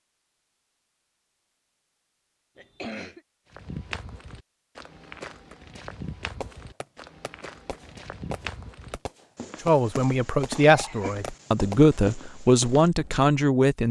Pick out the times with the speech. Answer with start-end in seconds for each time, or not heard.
9.7-13.8.